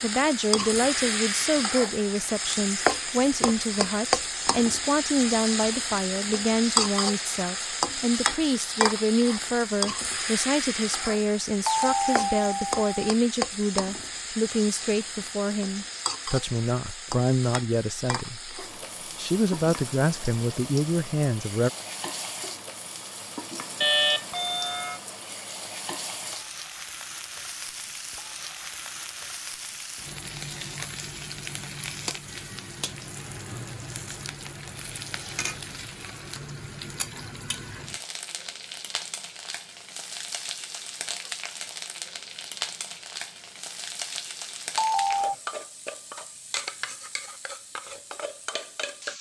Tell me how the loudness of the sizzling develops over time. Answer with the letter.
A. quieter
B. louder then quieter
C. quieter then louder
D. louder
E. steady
A.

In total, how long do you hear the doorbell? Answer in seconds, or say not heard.
3 s.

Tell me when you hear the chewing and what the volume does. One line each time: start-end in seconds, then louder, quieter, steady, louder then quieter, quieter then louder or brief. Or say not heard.
not heard.